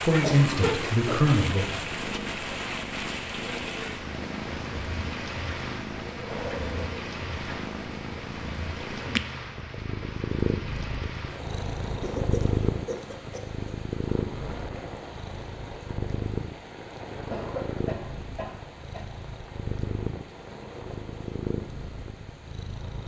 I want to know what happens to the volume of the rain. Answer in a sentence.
The volume of the rain goes down.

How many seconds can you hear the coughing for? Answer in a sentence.
The coughing can be heard for 4 seconds in total.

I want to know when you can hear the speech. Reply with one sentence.
You can hear the speech from 0.0 to 1.6 s.